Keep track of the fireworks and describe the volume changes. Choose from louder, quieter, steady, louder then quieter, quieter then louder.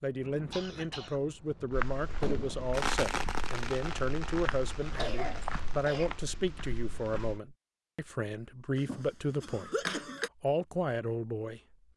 louder then quieter.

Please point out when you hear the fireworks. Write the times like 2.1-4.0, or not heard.
0.1-6.0.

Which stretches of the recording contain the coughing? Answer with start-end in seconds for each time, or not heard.
0.5-1.8, 4.8-6.2, 8.8-10.3.